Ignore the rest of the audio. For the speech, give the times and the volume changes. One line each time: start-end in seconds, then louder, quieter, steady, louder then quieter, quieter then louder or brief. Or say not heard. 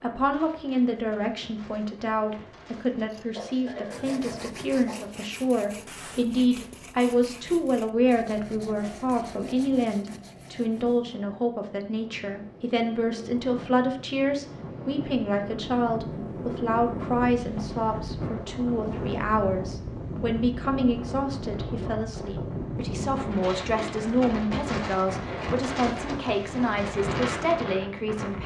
0.0-28.4 steady.